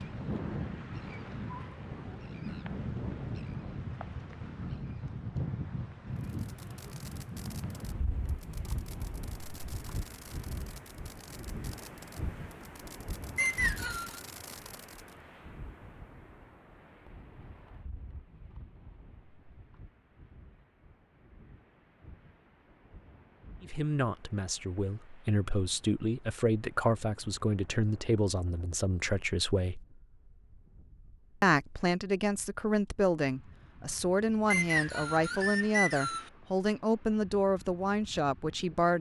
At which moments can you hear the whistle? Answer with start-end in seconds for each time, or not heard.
13.3-14.2, 34.5-36.3.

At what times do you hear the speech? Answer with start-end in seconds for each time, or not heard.
23.6-29.9, 31.4-38.9.